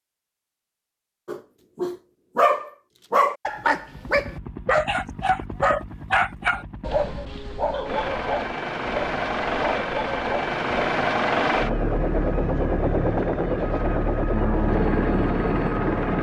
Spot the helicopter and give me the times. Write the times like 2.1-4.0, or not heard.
3.9-16.1.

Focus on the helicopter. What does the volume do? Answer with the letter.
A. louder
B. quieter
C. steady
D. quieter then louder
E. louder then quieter
A.